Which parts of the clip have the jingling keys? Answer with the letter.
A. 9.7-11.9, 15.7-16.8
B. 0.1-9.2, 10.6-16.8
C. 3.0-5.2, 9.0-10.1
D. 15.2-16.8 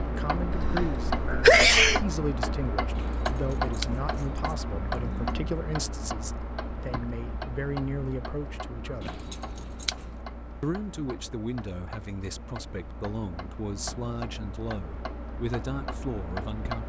C.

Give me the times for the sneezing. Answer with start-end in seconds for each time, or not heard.
0.5-2.0.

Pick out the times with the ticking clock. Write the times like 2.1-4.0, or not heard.
0.0-16.8.